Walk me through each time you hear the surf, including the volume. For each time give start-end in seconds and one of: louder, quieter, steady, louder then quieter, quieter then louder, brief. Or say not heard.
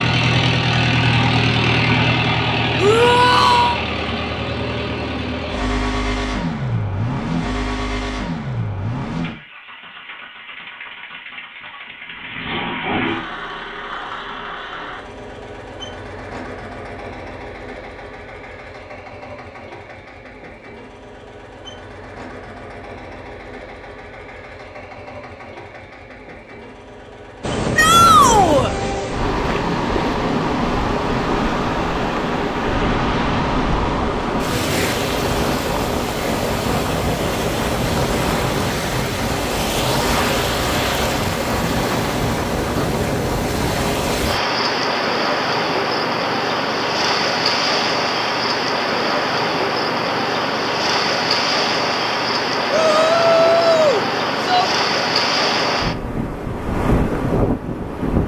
27.4-58.2 steady.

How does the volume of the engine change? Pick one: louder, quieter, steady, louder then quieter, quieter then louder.
quieter.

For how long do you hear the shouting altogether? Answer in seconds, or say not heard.
4 s.